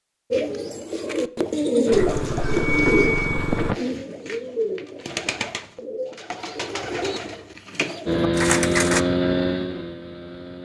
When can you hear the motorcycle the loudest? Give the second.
9 s.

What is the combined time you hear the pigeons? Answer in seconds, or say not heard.
9 s.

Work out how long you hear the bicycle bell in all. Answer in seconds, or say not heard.
2 s.